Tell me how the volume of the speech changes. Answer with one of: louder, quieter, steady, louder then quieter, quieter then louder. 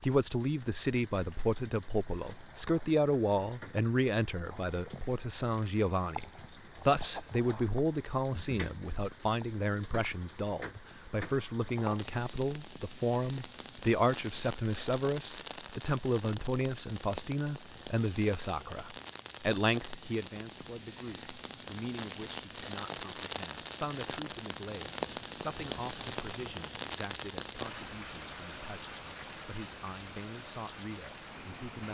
quieter.